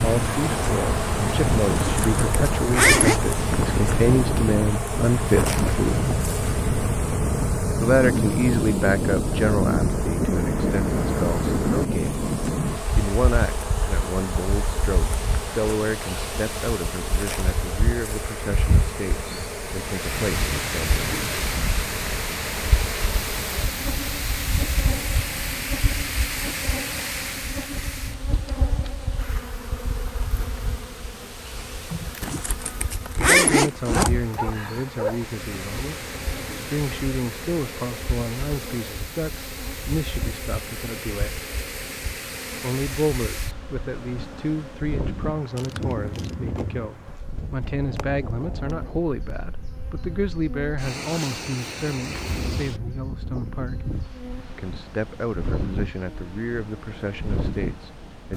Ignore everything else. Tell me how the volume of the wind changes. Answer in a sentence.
The loudness of the wind goes down.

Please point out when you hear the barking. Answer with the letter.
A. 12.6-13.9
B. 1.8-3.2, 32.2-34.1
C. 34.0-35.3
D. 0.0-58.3
C.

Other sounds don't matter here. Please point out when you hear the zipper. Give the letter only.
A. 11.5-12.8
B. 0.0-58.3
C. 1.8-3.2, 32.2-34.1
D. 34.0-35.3
C.